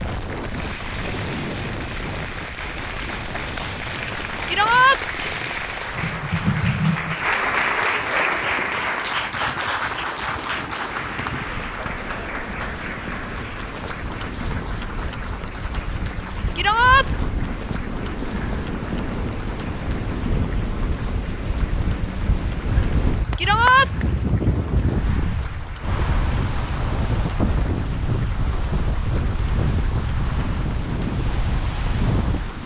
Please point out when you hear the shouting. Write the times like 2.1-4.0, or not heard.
4.5-5.0, 16.6-17.1, 23.4-23.9.